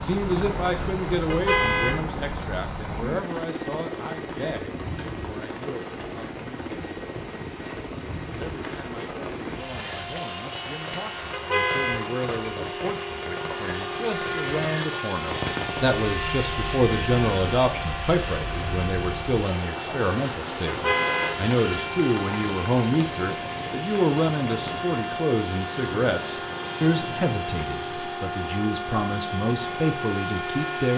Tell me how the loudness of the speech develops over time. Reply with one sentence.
The loudness of the speech goes down, then up.